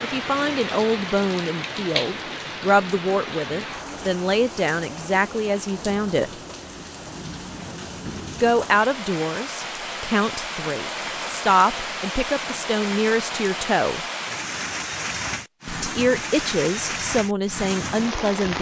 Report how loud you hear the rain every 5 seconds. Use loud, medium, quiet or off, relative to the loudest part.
loud, medium, loud, loud.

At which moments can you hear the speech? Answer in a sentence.
The speech can be heard from 0.0 to 6.3 s, from 8.4 to 14.0 s and from 15.7 to 18.5 s.